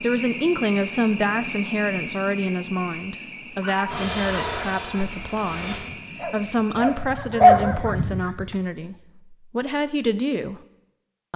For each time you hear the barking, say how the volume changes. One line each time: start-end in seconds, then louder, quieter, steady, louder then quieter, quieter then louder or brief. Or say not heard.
3.6-8.6 quieter then louder.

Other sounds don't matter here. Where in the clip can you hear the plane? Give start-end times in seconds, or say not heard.
3.9-5.8.